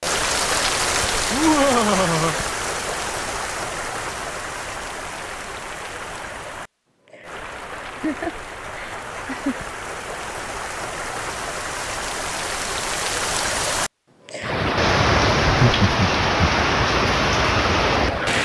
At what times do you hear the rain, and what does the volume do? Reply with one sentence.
You can hear the rain from 0.0 to 18.4 s, getting quieter then louder.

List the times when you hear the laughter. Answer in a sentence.
The laughter can be heard from 1.3 to 2.4 s, from 8.0 to 9.6 s and from 15.4 to 16.4 s.